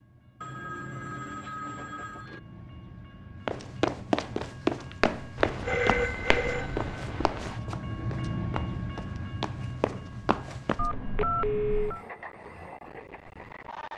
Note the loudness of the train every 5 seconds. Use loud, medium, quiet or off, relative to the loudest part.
medium, loud, medium.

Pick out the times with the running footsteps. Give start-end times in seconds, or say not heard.
3.5-10.8.